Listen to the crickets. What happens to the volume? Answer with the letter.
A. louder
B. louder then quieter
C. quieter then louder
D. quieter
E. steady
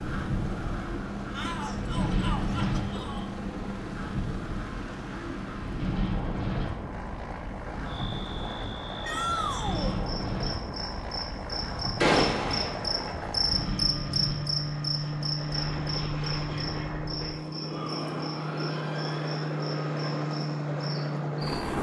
B.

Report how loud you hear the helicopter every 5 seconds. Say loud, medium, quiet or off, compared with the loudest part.
medium, medium, medium, loud, loud.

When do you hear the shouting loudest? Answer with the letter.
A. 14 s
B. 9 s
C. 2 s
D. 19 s
B.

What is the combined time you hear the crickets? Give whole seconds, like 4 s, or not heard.
14 s.